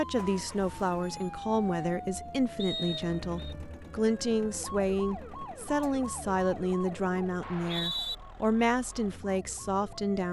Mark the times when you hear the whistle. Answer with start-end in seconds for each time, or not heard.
2.5-3.5, 7.4-8.2.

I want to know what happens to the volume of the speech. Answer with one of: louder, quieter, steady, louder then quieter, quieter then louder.
steady.